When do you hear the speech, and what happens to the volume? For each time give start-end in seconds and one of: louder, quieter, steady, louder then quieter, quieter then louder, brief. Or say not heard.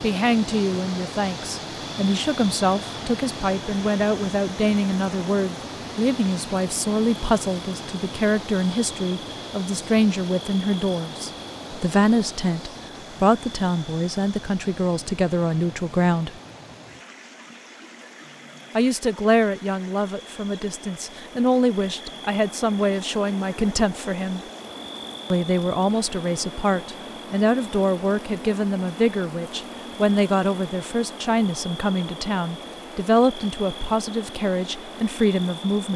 0.0-16.4 steady
18.8-24.4 quieter then louder
25.3-35.9 steady.